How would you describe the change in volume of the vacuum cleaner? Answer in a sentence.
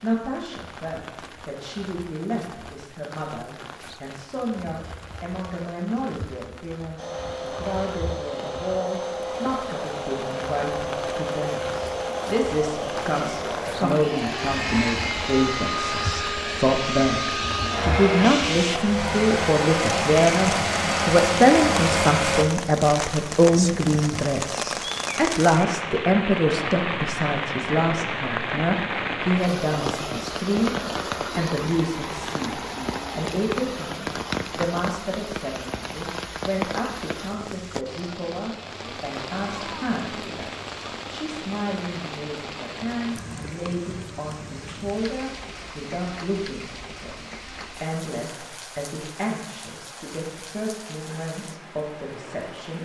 The volume of the vacuum cleaner goes up.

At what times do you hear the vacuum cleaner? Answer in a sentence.
The vacuum cleaner can be heard from 7.0 to 22.4 s.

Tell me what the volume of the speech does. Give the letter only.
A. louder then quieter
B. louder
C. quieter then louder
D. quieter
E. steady
A.